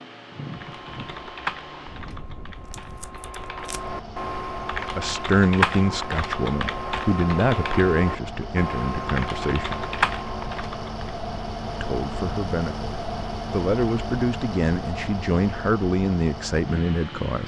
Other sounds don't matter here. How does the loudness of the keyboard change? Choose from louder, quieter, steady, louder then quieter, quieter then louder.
louder.